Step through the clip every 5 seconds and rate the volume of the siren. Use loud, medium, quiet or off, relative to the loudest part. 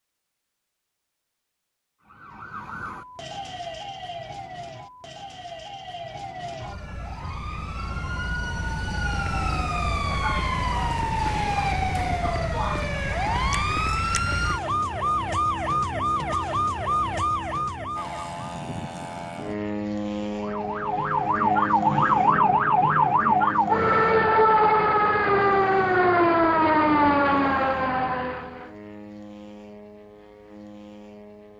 quiet, quiet, medium, medium, loud, loud, off.